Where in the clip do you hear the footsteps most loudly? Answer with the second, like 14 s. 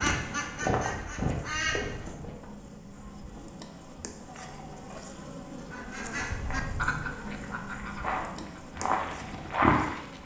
10 s.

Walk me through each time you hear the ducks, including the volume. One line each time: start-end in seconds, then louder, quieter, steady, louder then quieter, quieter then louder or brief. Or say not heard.
0.0-2.1 brief
5.5-10.2 quieter.